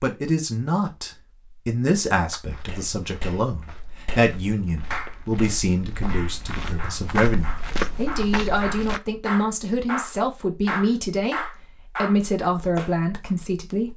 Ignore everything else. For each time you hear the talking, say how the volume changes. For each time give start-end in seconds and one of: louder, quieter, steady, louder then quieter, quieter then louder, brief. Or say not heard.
0.0-13.9 steady.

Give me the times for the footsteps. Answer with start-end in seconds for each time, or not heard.
2.5-9.0.